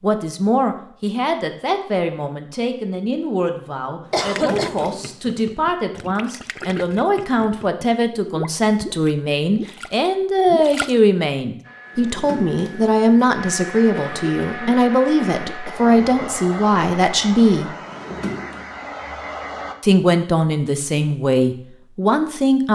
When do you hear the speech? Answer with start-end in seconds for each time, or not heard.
0.0-17.8, 19.8-22.7.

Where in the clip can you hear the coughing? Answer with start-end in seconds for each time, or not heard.
4.1-4.9, 13.9-16.2.